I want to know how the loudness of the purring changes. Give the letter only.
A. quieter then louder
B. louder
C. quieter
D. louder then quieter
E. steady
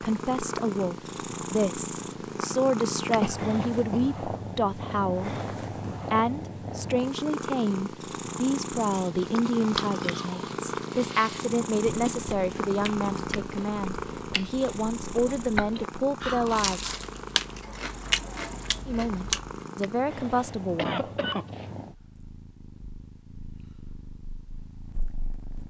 C.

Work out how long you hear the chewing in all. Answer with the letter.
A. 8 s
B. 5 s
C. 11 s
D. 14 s
C.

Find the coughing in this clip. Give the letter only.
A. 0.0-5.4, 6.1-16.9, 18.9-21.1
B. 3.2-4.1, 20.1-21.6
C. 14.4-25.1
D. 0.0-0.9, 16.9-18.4
B.